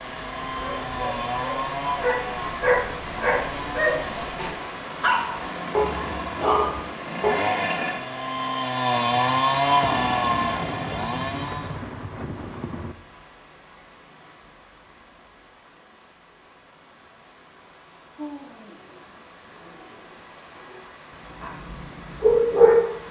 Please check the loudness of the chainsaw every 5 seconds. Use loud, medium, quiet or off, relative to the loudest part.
medium, loud, loud, off, off.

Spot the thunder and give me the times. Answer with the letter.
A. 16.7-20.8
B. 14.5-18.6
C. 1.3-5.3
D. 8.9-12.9
D.